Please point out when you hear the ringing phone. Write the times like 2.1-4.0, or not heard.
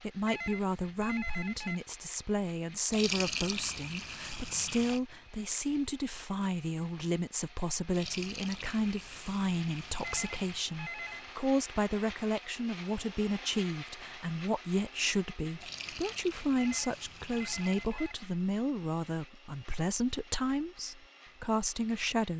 0.2-1.8, 10.0-11.3, 16.6-18.1.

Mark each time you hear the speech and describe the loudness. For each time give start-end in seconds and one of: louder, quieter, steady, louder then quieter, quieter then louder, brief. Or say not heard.
0.0-22.3 steady.